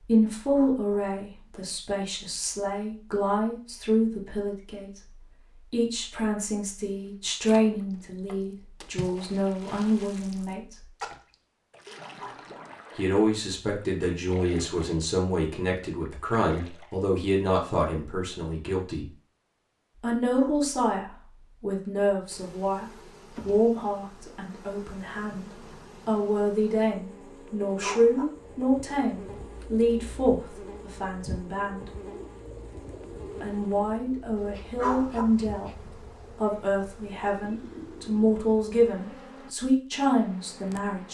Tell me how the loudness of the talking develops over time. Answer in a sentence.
The volume of the talking stays about the same.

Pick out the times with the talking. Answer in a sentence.
The talking can be heard from 0.0 to 10.8 s, from 12.9 to 19.1 s, from 20.0 to 31.9 s and from 33.4 to 41.0 s.